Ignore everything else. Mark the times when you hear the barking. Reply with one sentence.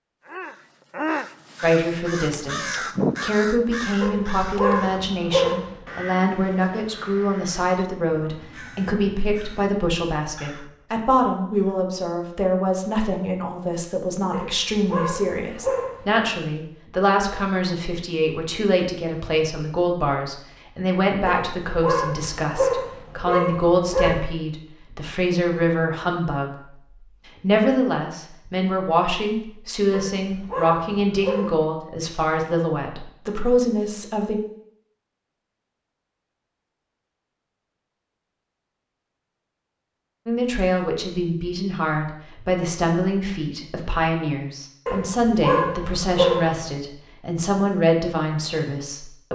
You can hear the barking from 4.0 to 5.8 s, from 14.3 to 16.2 s, from 21.2 to 24.2 s, from 29.9 to 31.6 s and from 44.9 to 46.8 s.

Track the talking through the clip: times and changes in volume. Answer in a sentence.
The talking can be heard from 1.6 to 26.5 s, at a steady volume; from 27.4 to 34.4 s, at a steady volume; and from 40.2 to 49.3 s, at a steady volume.